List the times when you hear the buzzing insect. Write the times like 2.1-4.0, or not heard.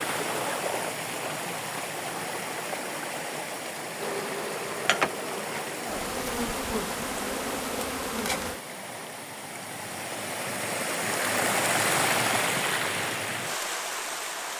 4.0-8.6.